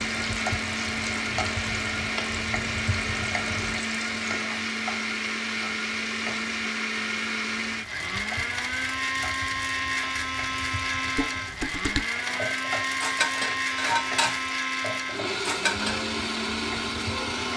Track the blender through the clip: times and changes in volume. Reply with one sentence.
You can hear the blender from 0.0 to 17.5 s, at a steady volume.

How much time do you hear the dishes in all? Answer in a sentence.
You can hear the dishes for 5 seconds altogether.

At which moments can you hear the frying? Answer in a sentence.
The frying can be heard from 0.0 to 17.5 s.